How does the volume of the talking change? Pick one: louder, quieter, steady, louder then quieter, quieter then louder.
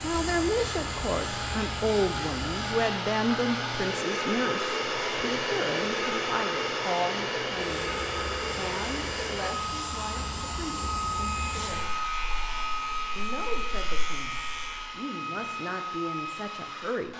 quieter.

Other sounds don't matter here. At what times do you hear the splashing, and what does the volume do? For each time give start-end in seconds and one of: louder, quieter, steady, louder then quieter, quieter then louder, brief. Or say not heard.
not heard.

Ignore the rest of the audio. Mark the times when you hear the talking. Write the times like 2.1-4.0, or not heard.
0.0-12.0, 13.2-17.1.